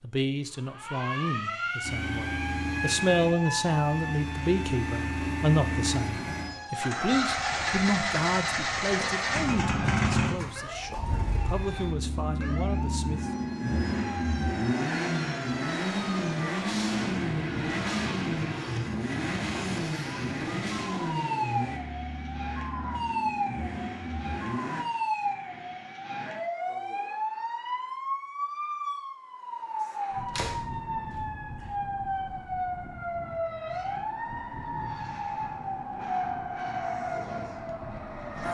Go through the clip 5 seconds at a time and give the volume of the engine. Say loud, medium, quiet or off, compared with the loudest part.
medium, loud, loud, loud, medium, off, off, off.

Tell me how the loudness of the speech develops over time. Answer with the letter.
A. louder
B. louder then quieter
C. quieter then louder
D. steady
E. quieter
B.